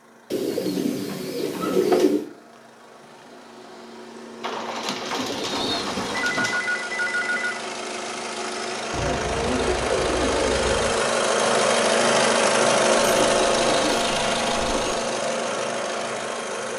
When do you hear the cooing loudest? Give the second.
2 s.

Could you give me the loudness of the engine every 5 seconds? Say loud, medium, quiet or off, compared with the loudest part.
quiet, medium, loud, medium.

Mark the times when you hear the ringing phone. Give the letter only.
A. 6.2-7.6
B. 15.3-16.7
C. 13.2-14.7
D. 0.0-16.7
A.